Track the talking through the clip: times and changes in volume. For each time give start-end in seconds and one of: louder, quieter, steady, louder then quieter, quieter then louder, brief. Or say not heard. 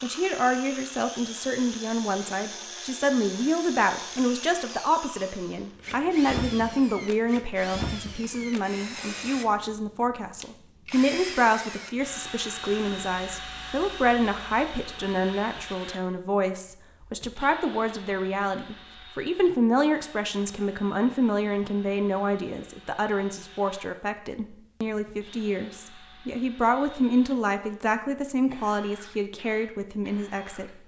0.0-30.8 steady.